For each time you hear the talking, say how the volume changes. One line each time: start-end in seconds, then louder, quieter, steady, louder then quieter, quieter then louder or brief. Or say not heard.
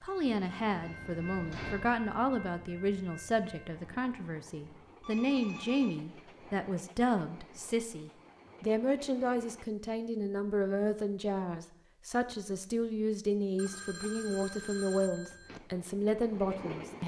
0.0-17.0 steady.